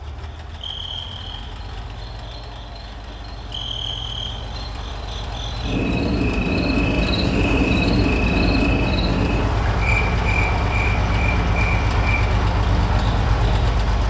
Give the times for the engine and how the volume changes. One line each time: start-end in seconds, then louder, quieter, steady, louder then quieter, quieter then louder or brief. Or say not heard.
0.0-14.0 louder.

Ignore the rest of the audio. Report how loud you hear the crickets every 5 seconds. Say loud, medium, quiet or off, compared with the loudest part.
quiet, loud, medium.